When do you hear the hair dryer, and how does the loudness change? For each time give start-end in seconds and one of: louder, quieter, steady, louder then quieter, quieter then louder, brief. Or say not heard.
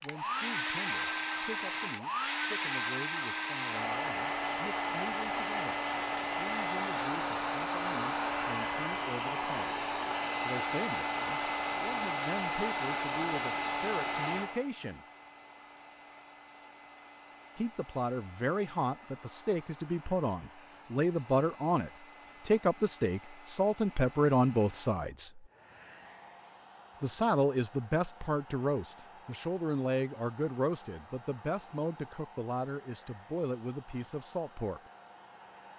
0.0-35.7 quieter.